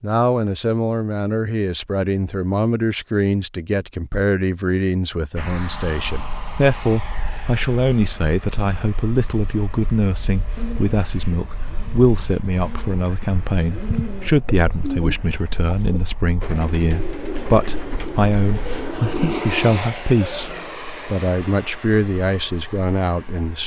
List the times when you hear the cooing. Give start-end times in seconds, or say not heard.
10.6-20.8.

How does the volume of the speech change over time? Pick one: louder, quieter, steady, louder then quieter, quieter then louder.
steady.